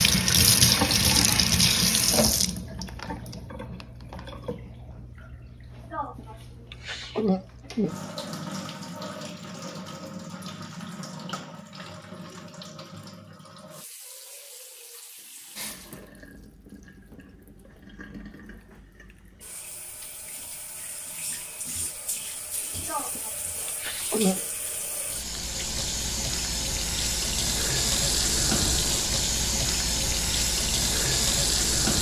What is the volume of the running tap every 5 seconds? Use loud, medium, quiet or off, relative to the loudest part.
loud, quiet, quiet, quiet, quiet, loud, loud.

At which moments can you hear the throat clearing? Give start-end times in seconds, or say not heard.
5.9-8.0, 22.9-24.4.